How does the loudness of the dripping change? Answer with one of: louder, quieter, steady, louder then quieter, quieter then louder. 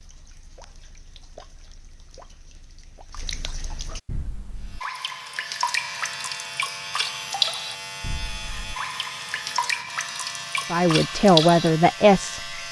louder.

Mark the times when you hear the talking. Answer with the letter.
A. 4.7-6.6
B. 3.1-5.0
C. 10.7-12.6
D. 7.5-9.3
C.